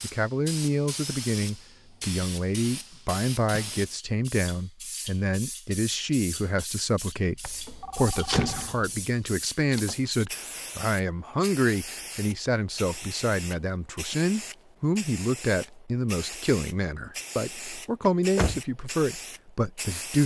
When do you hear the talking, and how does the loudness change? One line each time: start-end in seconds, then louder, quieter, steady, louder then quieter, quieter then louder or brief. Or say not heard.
0.0-20.2 steady.